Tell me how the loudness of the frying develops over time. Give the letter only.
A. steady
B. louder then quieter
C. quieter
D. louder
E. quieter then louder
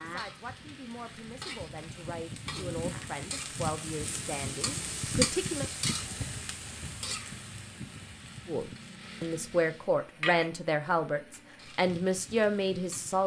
B.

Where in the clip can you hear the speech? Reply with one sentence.
The speech can be heard from 0.0 to 5.7 s and from 8.4 to 13.2 s.